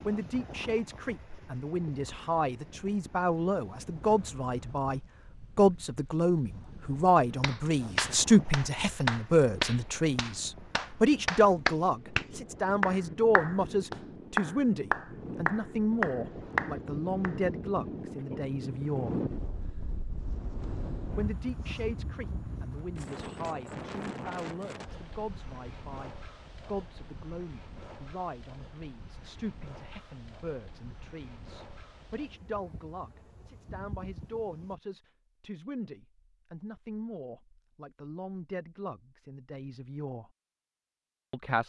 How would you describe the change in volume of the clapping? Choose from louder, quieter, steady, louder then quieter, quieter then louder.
quieter then louder.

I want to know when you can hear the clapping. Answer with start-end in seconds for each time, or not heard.
7.4-17.4.